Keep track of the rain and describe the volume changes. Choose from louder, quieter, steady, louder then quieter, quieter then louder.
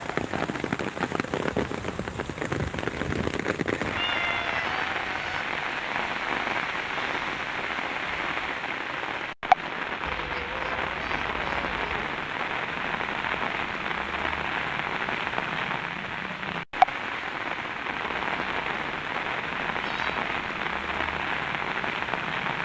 steady.